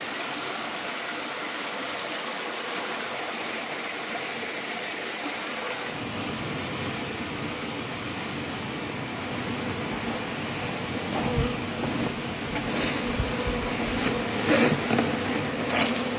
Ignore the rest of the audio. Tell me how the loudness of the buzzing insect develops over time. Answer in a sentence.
The volume of the buzzing insect goes up.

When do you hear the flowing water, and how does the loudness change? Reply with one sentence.
The flowing water can be heard from 0.0 to 16.1 s, at a steady volume.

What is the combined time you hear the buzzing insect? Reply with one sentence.
You can hear the buzzing insect for 7 seconds altogether.